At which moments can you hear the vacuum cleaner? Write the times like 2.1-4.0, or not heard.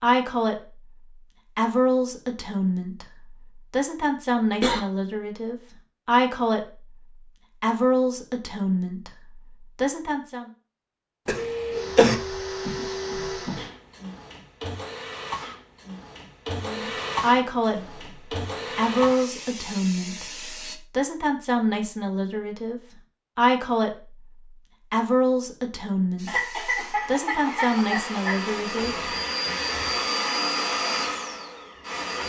11.3-20.8, 26.1-32.2.